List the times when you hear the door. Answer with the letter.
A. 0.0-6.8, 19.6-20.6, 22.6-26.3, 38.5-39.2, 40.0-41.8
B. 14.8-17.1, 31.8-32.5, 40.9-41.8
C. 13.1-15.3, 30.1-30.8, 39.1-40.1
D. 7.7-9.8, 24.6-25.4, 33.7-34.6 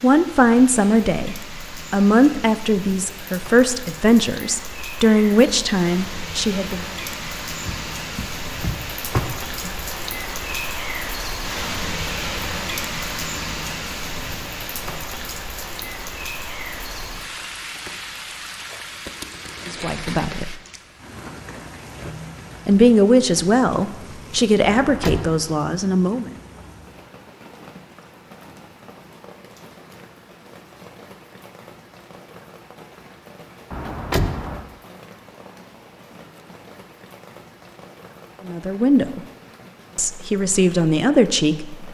D.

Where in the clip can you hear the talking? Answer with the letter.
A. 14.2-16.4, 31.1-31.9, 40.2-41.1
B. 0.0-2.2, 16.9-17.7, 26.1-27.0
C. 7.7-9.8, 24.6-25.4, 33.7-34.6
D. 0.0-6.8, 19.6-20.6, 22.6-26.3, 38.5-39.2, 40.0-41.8
D.